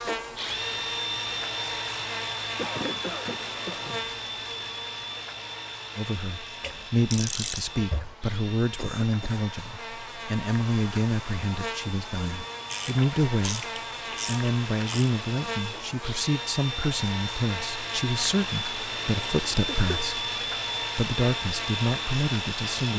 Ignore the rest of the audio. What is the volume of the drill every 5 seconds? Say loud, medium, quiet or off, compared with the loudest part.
loud, medium, medium, loud, loud.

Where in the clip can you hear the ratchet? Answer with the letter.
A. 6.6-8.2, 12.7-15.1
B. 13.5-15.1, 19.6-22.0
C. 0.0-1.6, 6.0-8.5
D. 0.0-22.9
A.